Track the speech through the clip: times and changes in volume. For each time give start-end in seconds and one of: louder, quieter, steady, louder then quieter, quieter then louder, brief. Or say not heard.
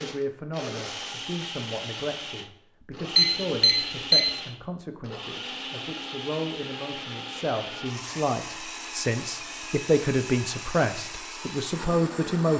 0.0-12.5 louder.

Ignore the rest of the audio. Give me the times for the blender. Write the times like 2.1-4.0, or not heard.
0.0-12.5.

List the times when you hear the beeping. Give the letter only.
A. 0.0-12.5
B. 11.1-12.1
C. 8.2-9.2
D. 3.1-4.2
D.